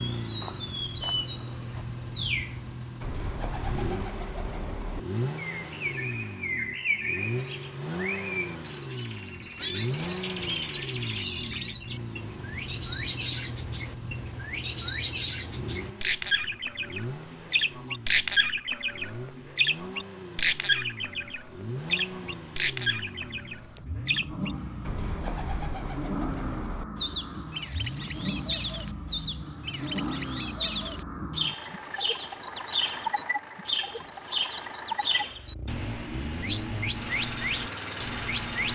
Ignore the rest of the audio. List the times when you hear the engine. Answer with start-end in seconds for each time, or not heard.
0.0-38.7.